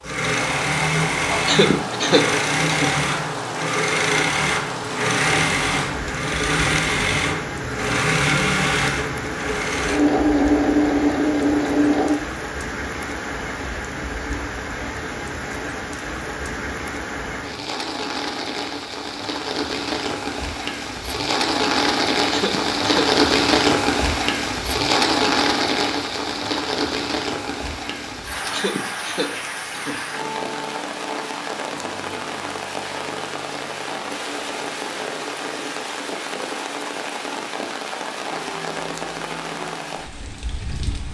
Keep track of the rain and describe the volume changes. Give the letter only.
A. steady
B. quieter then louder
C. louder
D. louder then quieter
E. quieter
D.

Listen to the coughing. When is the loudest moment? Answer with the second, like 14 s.
2 s.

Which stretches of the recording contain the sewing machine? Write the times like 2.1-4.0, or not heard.
0.0-12.2.